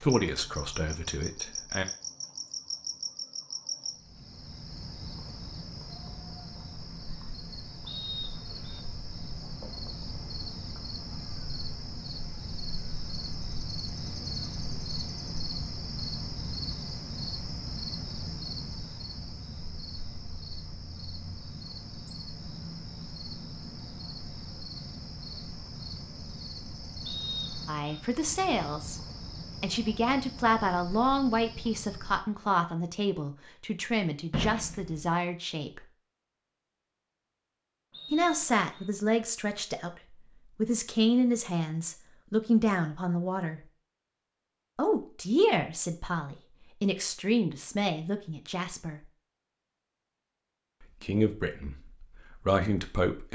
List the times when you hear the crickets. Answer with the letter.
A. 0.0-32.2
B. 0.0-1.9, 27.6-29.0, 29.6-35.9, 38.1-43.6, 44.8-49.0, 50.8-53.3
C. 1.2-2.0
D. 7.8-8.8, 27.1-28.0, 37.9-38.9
A.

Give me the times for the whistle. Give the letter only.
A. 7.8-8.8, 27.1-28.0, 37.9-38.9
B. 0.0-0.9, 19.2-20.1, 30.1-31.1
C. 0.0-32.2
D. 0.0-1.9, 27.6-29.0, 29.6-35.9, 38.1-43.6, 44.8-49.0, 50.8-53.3
A.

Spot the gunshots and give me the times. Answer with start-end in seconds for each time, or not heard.
34.3-35.1.